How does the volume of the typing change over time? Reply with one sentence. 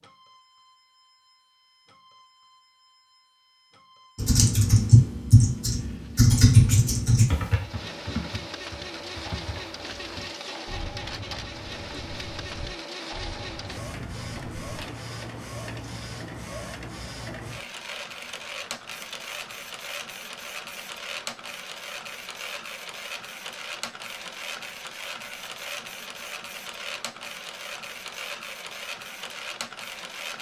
The volume of the typing goes down.